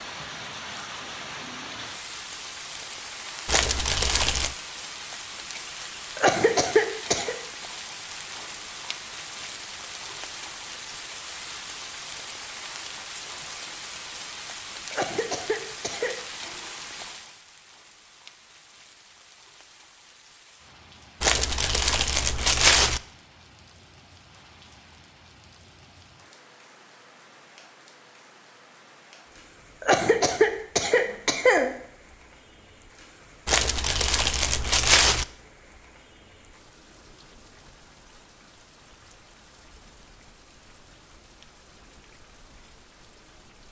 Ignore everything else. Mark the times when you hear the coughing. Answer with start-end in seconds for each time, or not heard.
6.2-7.3, 14.9-16.1, 29.8-31.7.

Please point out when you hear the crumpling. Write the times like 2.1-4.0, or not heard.
3.5-4.5, 21.2-23.0, 33.5-35.2.